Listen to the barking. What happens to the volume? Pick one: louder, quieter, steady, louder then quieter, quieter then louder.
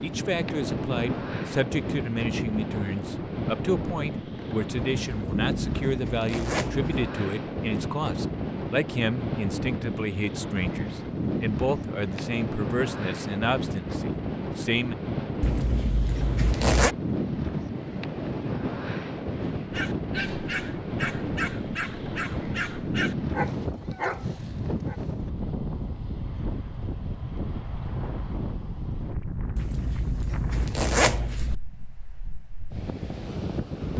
steady.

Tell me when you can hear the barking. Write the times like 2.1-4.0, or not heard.
19.6-25.0.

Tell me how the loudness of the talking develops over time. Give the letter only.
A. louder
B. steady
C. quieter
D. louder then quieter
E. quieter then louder
B.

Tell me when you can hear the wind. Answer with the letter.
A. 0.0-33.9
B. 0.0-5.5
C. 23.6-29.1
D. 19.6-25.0
A.